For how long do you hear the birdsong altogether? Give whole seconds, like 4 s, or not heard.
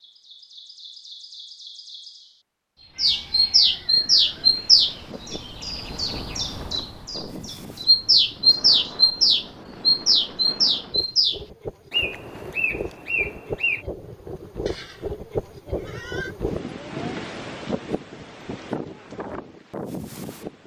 14 s.